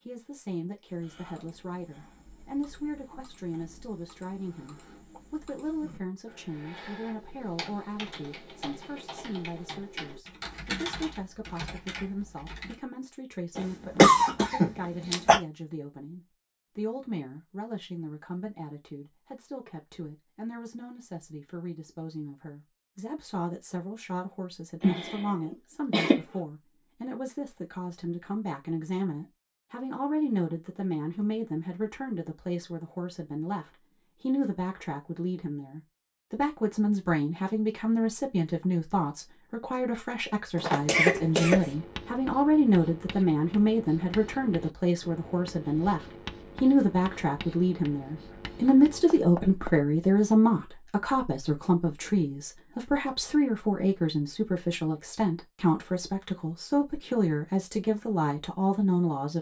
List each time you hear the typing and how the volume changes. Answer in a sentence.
The typing can be heard from 0.8 to 12.8 s, getting louder.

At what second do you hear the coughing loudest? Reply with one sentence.
The loudest moment of the coughing is at 14 seconds.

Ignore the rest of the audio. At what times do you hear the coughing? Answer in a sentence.
You can hear the coughing from 13.6 to 15.4 s, from 24.8 to 26.2 s and from 40.5 to 41.7 s.